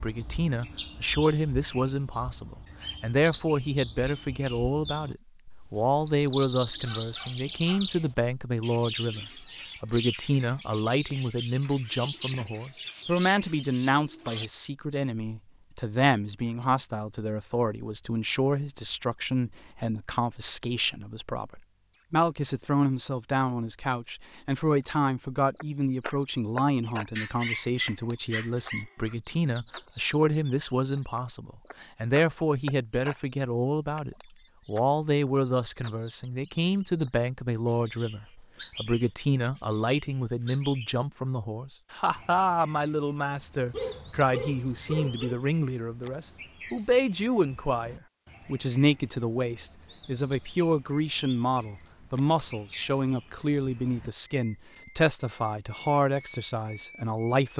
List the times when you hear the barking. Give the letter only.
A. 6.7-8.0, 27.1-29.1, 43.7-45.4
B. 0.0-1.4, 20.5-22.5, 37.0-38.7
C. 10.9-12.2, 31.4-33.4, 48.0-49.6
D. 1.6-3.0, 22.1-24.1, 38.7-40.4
A.